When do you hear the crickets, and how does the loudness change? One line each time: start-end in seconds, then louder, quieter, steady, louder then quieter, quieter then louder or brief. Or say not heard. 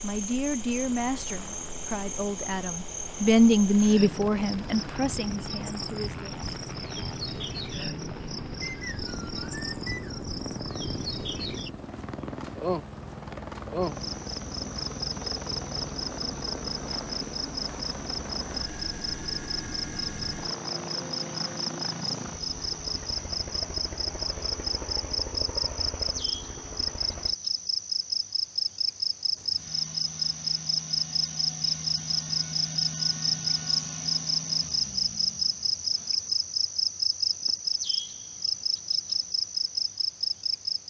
0.0-40.8 louder.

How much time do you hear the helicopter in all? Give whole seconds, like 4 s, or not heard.
27 s.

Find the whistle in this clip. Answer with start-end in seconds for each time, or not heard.
8.6-10.2.